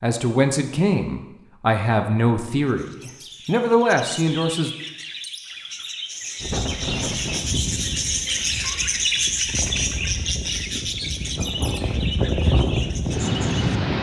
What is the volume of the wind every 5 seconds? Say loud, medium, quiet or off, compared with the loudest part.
off, medium, loud.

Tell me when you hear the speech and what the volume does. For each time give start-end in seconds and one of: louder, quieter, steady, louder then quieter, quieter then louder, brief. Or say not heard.
0.0-4.7 quieter then louder.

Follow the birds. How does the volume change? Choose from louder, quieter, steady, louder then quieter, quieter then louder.
louder then quieter.